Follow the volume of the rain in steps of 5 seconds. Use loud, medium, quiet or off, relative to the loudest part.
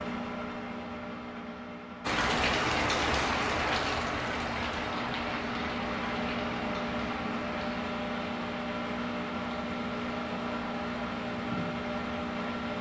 loud, medium, quiet.